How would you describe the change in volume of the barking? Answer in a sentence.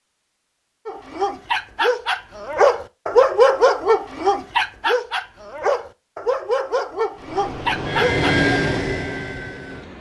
The loudness of the barking goes up, then down.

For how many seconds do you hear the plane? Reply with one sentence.
The plane can be heard for 3 seconds in total.